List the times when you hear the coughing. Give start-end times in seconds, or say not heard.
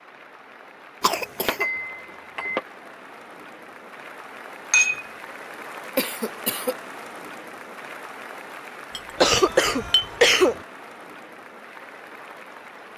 1.0-1.6, 6.0-6.8, 9.2-10.6.